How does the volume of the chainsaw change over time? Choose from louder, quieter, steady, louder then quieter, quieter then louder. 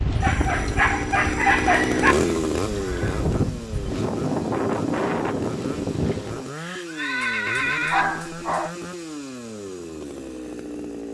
quieter.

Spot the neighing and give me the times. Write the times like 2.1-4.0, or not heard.
2.0-3.3, 6.0-8.1.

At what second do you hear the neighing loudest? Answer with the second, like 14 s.
8 s.